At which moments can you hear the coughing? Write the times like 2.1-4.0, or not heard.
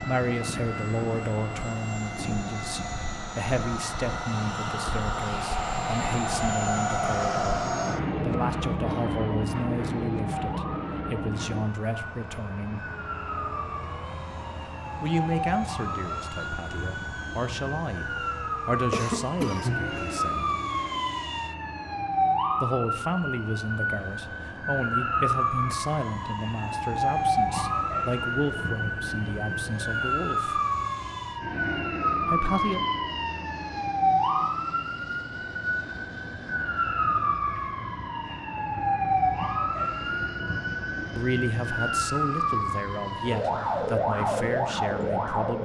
18.9-20.1.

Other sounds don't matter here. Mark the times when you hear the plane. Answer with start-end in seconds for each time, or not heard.
0.0-45.6.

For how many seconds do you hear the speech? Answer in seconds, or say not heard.
31 s.